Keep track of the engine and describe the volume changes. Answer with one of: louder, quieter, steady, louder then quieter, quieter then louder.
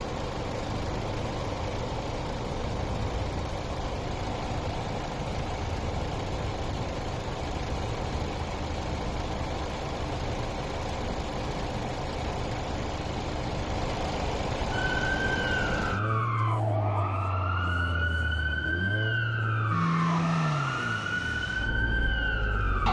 steady.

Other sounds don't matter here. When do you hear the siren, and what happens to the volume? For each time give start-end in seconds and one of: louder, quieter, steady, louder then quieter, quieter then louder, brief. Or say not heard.
14.7-22.8 steady.